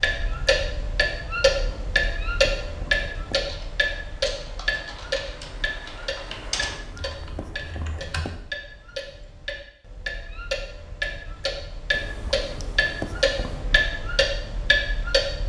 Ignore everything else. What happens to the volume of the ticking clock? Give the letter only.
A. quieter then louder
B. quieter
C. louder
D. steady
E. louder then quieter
A.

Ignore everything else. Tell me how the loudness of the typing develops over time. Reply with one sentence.
The volume of the typing goes up, then down.